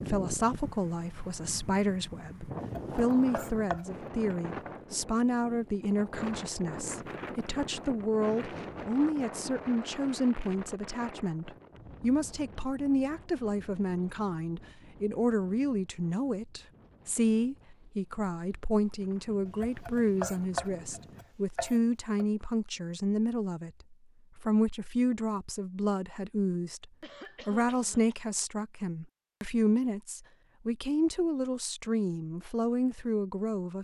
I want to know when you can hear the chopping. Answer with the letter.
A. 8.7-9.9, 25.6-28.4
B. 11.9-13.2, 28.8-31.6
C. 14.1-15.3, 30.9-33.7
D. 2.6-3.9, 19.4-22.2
D.